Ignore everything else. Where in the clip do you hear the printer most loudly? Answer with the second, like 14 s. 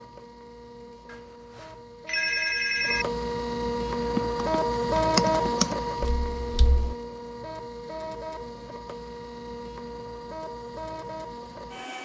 5 s.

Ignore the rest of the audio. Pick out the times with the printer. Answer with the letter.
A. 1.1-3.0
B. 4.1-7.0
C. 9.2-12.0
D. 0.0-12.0
D.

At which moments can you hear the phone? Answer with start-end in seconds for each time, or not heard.
1.1-3.0.